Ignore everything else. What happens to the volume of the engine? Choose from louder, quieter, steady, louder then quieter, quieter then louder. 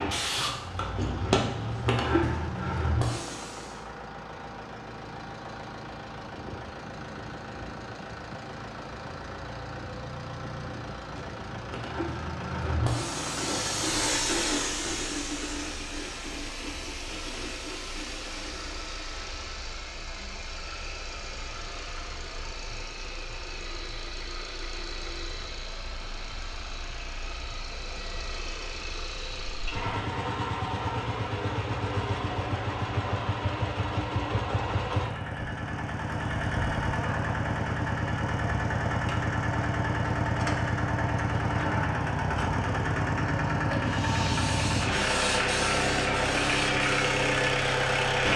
louder.